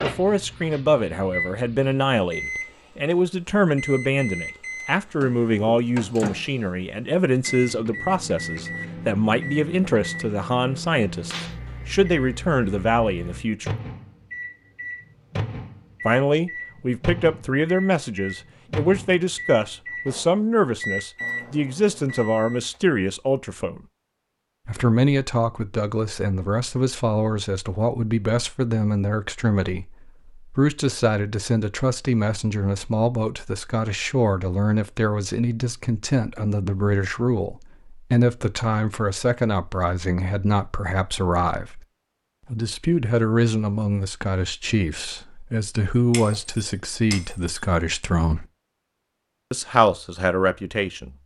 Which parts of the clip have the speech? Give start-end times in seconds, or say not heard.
0.0-13.8, 16.1-23.8, 24.6-41.9, 42.5-48.5, 49.5-51.1.